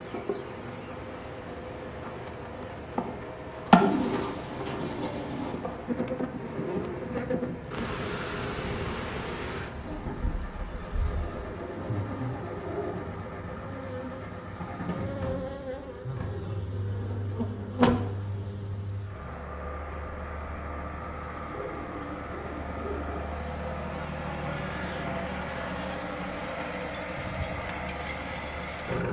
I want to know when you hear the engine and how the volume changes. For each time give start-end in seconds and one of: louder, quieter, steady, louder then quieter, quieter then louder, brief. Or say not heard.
0.0-29.0 louder.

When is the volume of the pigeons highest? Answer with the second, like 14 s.
4 s.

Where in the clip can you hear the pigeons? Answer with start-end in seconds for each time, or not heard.
3.8-5.5, 11.0-13.1, 21.2-23.2.